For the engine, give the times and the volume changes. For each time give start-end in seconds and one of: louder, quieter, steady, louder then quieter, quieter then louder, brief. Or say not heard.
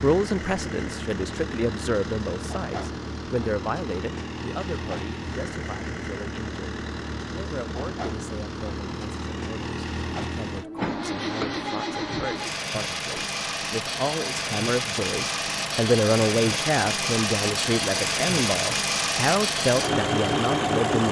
0.0-21.0 louder.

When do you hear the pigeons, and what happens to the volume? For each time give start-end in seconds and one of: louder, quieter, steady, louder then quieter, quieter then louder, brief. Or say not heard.
not heard.